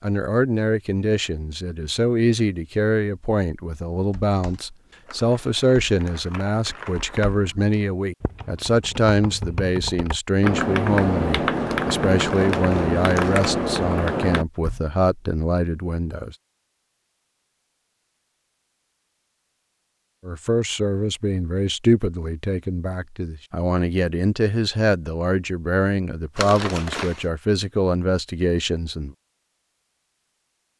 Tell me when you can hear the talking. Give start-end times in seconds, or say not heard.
0.0-16.4, 20.2-29.1.